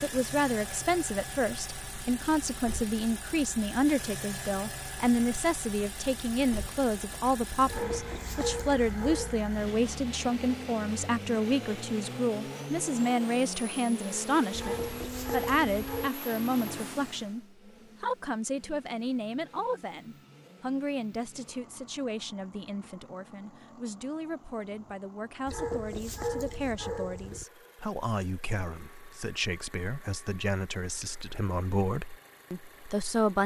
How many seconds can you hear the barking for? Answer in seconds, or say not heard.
5 s.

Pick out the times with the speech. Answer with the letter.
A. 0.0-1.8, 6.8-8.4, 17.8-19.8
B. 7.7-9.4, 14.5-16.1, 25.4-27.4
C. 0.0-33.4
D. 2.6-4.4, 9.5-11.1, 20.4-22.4
C.